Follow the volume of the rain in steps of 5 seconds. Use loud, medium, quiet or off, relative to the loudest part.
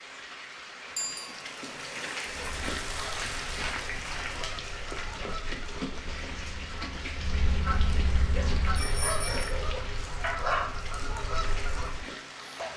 loud, loud, medium.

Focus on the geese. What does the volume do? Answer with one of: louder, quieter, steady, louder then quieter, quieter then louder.
louder.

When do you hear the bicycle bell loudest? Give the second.
1 s.